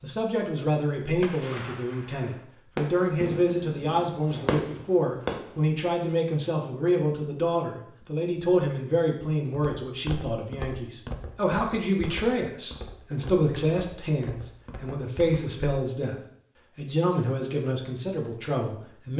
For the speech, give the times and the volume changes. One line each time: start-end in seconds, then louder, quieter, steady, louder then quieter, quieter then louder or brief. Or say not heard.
0.0-19.1 steady.